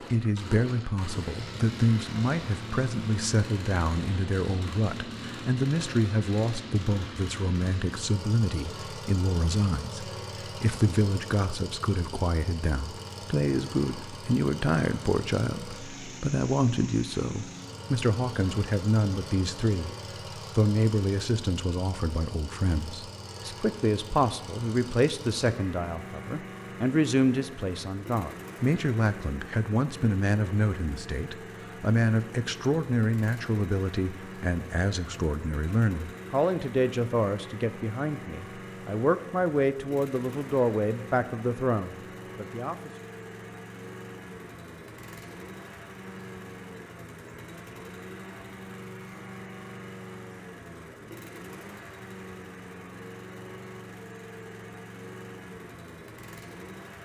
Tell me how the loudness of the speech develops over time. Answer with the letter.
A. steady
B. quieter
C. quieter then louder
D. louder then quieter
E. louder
A.